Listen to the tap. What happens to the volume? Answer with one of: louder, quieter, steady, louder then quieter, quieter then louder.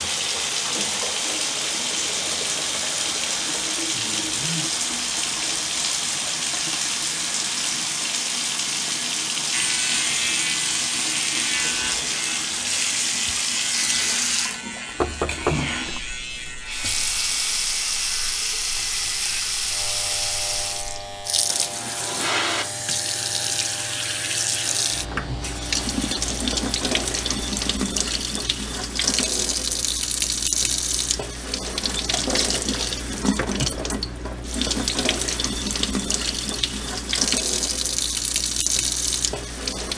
steady.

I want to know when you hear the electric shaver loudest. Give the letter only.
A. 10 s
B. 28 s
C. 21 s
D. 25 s
A.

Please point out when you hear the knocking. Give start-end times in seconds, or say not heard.
15.0-16.1.